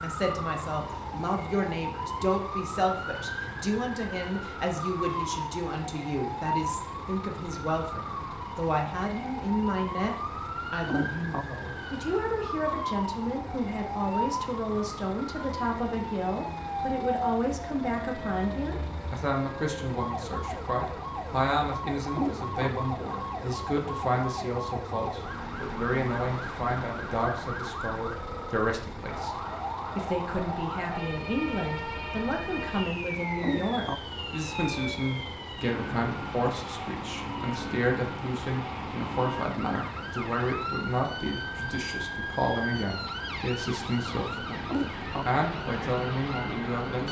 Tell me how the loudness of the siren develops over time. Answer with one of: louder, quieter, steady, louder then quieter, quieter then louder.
steady.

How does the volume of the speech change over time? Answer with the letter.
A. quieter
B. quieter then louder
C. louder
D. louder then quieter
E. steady
E.